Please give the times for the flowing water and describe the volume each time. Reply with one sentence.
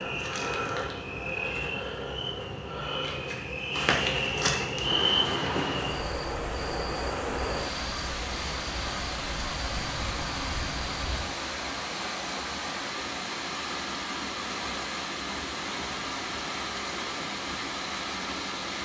The flowing water can be heard from 4.8 to 18.8 s, at a steady volume.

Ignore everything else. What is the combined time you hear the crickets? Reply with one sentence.
The crickets can be heard for 11 seconds in total.